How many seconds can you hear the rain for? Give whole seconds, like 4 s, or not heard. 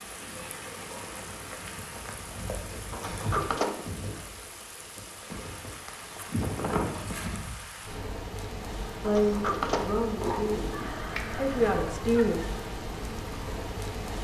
14 s.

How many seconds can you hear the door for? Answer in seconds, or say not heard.
3 s.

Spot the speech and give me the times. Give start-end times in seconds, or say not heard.
9.0-12.4.